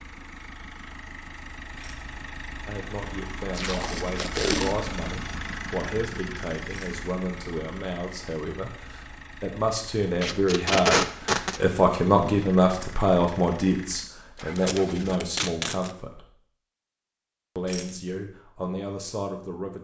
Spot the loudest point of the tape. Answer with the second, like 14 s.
11 s.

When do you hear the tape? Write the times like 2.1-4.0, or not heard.
3.5-4.8, 10.2-11.6, 14.6-15.9.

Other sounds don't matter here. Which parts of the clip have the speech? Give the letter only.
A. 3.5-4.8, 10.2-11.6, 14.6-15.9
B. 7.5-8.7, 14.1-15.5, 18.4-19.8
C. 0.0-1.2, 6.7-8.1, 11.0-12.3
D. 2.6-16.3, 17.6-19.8
D.